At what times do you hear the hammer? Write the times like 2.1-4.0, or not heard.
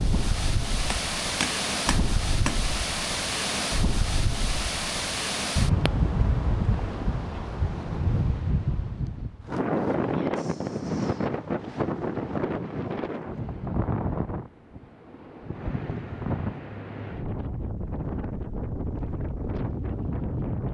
0.9-2.6.